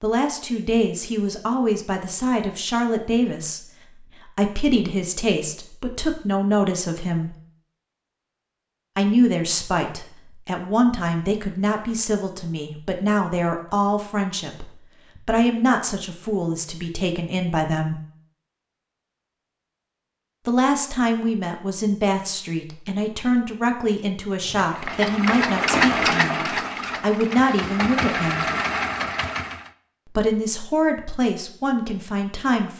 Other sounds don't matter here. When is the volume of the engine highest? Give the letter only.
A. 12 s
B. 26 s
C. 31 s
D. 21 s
B.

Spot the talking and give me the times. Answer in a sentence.
You can hear the talking from 0.0 to 7.3 s, from 8.9 to 18.0 s, from 20.4 to 28.5 s and from 30.1 to 32.7 s.